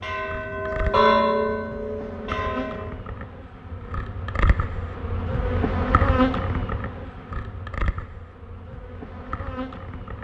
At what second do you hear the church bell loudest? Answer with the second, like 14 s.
1 s.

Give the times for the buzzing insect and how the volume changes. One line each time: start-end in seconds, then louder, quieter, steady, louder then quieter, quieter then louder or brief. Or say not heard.
0.0-10.1 louder then quieter.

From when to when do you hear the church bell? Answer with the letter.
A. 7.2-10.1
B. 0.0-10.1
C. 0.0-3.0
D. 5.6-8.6
C.